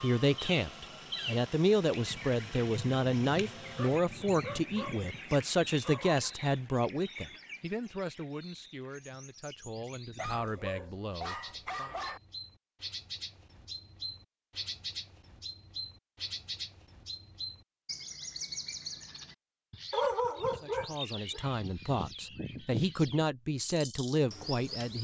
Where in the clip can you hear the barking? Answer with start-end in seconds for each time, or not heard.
3.8-6.3, 10.2-12.2, 19.9-21.4.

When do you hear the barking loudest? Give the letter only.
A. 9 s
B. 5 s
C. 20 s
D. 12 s
C.